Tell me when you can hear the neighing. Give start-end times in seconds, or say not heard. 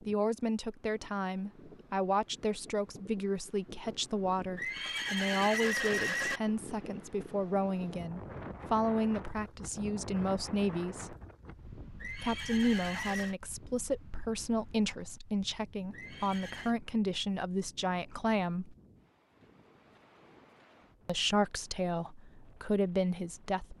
4.5-6.4, 12.0-13.3, 15.9-16.8.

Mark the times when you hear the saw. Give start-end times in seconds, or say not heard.
not heard.